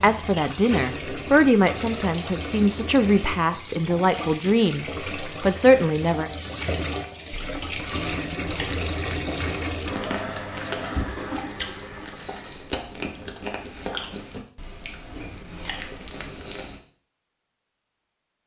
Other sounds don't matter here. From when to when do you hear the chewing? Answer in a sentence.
The chewing can be heard from 7.3 to 16.8 s.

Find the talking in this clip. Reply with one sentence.
You can hear the talking from 0.0 to 6.3 s.